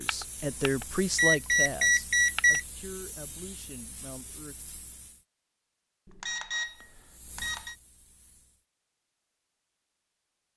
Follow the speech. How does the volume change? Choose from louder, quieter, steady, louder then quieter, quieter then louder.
quieter.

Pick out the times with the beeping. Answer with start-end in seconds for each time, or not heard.
0.1-2.6, 6.0-7.8.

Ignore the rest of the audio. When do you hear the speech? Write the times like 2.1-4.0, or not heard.
0.0-4.7.